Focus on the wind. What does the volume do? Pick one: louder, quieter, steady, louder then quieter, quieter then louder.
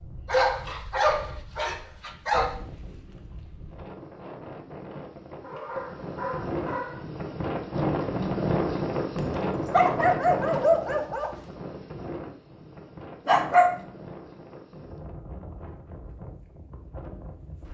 louder then quieter.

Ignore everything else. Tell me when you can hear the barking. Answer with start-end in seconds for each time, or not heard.
0.2-2.5, 5.4-7.0, 9.2-11.3, 13.2-13.8.